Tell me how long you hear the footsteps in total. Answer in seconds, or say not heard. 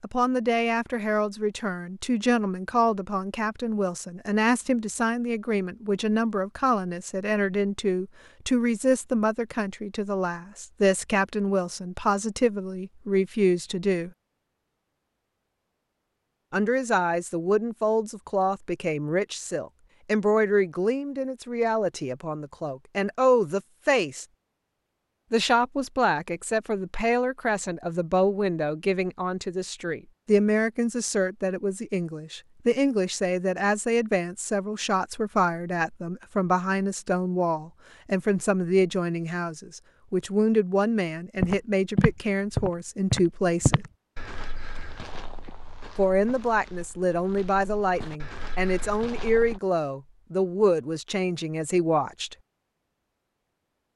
8 s.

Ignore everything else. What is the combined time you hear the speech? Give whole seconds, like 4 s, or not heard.
47 s.